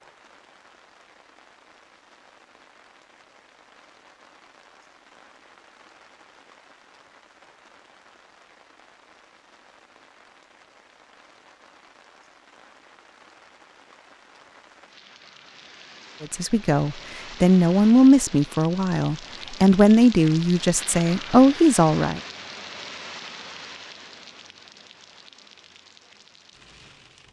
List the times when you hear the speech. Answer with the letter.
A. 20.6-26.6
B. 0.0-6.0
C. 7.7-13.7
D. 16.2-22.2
D.